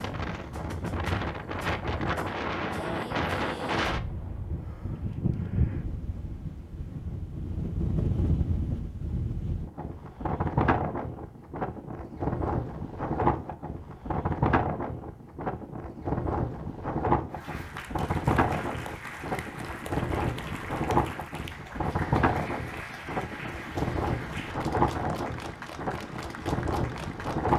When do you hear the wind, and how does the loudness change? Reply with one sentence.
You can hear the wind from 0.0 to 27.5 s, at a steady volume.